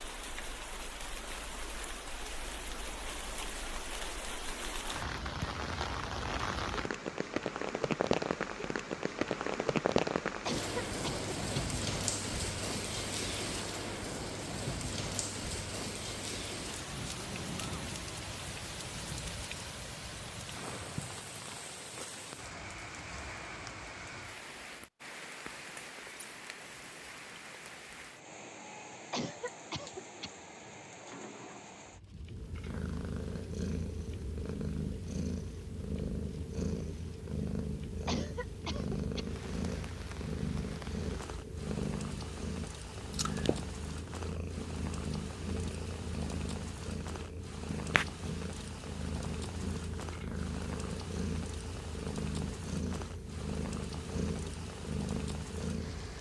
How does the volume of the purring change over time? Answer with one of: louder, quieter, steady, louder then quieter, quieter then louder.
steady.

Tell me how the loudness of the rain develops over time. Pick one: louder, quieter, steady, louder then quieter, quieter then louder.
quieter.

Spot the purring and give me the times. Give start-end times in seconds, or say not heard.
32.2-56.1.